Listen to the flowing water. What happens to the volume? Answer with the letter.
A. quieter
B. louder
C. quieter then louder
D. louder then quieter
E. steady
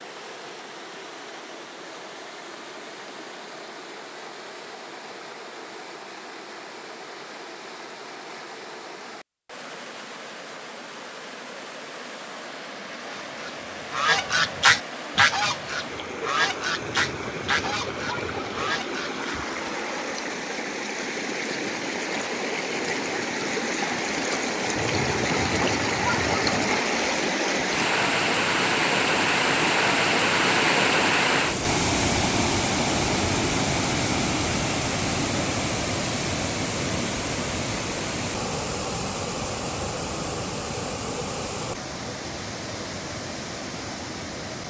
D.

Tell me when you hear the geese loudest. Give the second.
15 s.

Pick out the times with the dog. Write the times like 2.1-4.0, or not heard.
16.8-18.8, 24.8-26.8.